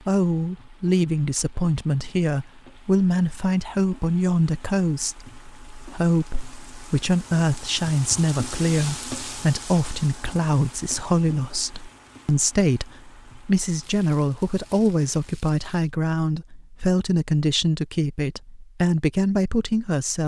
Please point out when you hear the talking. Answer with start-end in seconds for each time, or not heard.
0.1-20.2.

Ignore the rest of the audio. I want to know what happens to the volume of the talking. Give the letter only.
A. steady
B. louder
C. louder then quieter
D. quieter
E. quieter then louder
A.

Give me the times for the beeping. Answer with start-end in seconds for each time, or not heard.
not heard.